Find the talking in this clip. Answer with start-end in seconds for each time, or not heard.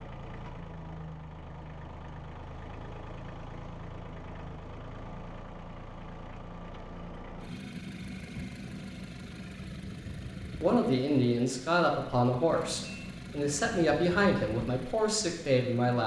10.6-16.0.